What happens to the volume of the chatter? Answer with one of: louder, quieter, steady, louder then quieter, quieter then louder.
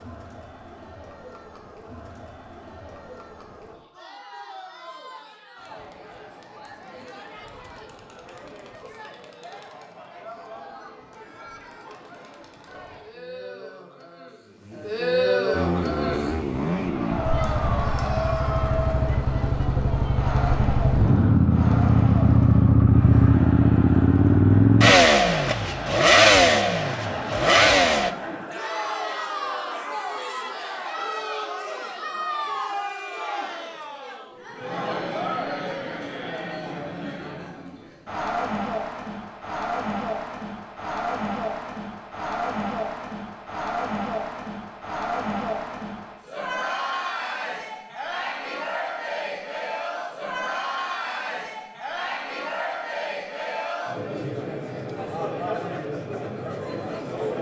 louder.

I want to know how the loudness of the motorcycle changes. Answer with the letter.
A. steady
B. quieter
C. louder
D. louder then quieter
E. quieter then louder
C.